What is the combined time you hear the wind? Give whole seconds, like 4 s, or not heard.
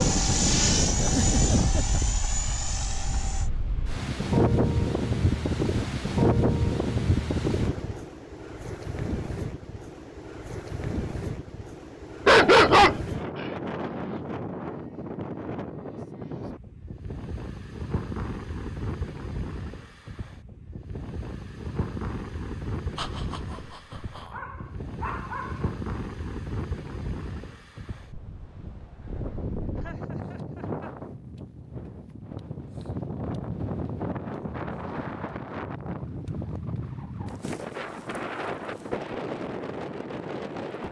41 s.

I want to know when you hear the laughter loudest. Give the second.
1 s.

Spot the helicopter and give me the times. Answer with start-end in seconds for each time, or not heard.
0.0-3.5.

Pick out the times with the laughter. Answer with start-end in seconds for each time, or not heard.
1.0-1.9, 22.9-24.4, 29.8-30.9.